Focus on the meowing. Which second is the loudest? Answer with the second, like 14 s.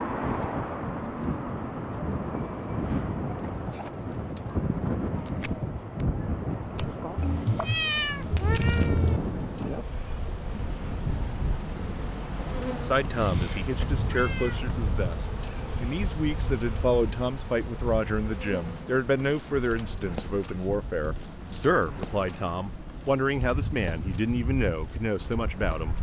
8 s.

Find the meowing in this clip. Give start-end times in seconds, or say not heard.
7.2-9.2, 13.1-14.6.